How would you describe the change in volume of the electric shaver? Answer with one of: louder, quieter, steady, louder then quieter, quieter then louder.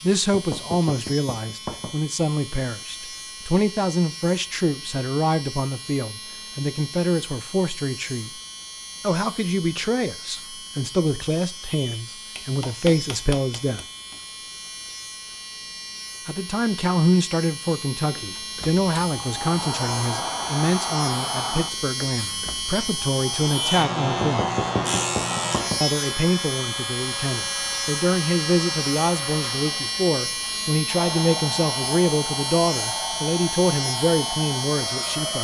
louder.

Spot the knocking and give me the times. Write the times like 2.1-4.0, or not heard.
0.3-1.9, 12.3-14.2, 24.2-25.8.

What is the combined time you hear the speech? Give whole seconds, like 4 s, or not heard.
31 s.